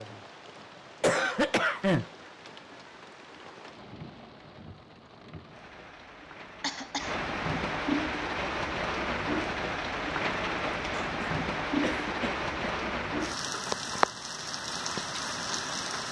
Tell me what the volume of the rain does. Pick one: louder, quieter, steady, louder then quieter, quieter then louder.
louder.